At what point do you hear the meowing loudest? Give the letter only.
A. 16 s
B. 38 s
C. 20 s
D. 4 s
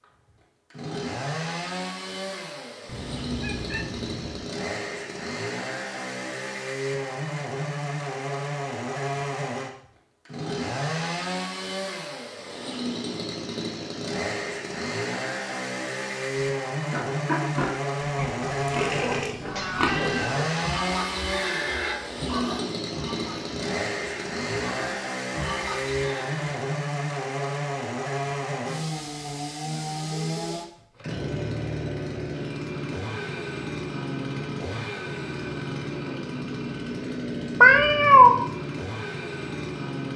B.